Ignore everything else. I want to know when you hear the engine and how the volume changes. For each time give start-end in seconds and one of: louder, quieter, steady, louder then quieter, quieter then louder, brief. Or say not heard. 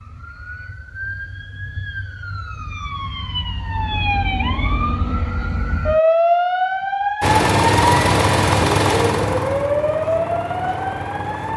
7.2-11.5 quieter.